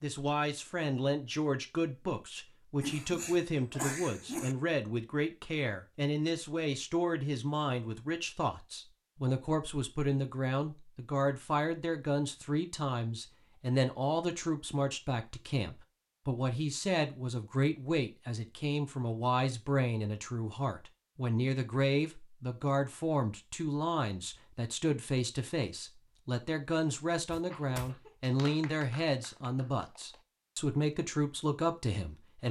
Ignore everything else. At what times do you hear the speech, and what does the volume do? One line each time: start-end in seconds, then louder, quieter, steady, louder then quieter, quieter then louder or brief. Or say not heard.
0.0-32.4 steady.